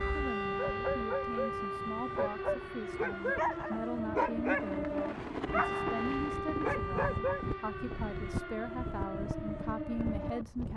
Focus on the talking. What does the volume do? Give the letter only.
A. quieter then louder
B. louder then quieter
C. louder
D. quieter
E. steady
E.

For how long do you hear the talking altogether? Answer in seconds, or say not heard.
11 s.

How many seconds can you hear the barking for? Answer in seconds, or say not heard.
7 s.